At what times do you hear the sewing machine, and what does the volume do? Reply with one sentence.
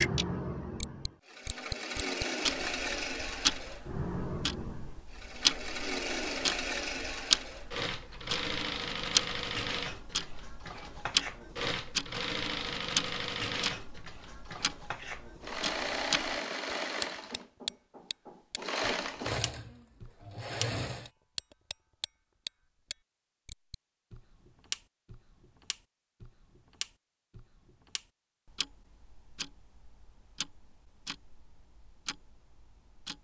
You can hear the sewing machine from 0.0 to 21.1 s, at a steady volume.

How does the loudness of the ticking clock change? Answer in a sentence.
The loudness of the ticking clock goes down.